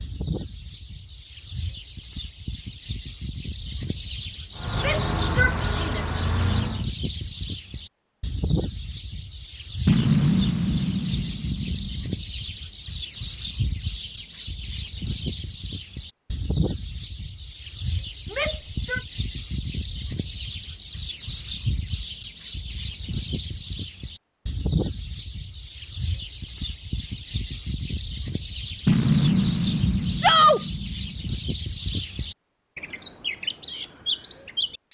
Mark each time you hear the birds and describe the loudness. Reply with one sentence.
The birds can be heard from 0.0 to 34.9 s, at a steady volume.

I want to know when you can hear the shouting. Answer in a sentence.
The shouting can be heard from 4.8 to 6.0 s, from 18.3 to 19.0 s and from 30.2 to 30.6 s.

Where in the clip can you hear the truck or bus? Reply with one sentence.
The truck or bus can be heard from 4.5 to 6.9 s.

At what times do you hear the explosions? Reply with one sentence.
The explosions can be heard from 9.8 to 12.2 s and from 28.9 to 31.2 s.